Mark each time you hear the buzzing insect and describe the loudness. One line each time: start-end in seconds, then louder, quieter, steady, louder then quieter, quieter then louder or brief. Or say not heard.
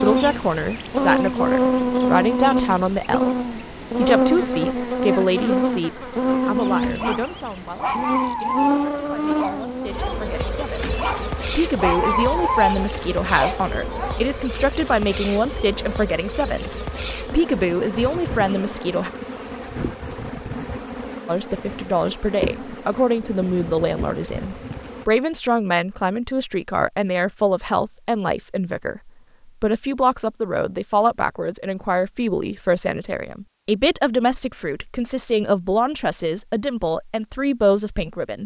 0.0-25.1 quieter.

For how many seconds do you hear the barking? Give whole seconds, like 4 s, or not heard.
8 s.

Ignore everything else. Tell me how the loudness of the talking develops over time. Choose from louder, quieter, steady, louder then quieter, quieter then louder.
steady.